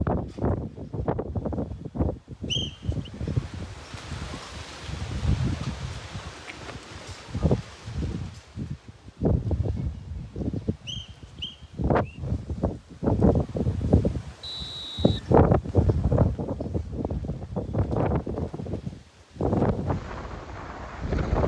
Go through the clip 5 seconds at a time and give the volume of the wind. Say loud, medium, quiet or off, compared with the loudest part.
medium, medium, loud, loud, medium.